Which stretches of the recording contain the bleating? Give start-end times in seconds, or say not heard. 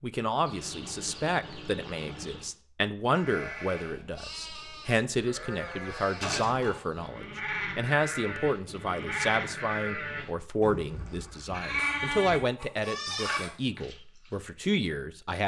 3.1-13.9.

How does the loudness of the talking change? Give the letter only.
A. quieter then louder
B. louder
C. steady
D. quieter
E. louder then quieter
C.